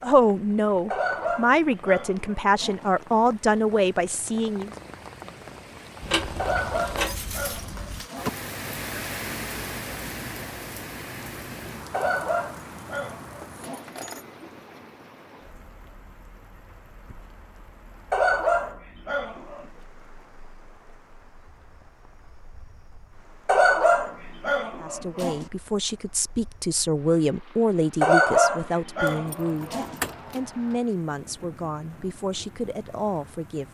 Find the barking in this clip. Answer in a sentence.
The barking can be heard from 0.9 to 2.9 s, from 6.3 to 8.3 s, from 11.9 to 13.9 s, from 18.1 to 19.6 s, from 23.4 to 25.4 s and from 28.0 to 30.0 s.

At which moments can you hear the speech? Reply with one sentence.
You can hear the speech from 0.0 to 4.7 s and from 24.8 to 33.6 s.